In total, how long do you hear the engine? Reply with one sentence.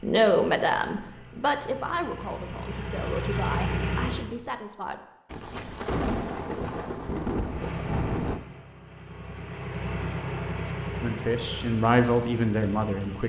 You can hear the engine for 10 seconds altogether.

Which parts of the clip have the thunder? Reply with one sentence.
You can hear the thunder from 5.3 to 8.4 s.